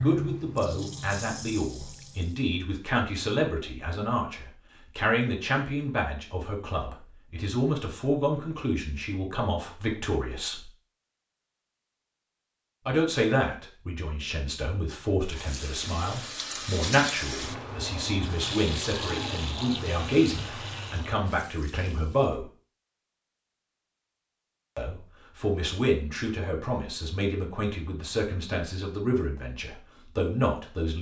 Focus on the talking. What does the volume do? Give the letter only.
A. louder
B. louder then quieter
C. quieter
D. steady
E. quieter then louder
D.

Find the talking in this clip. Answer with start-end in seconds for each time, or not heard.
0.0-10.7, 12.8-22.4, 24.8-30.9.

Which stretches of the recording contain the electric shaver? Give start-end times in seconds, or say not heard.
not heard.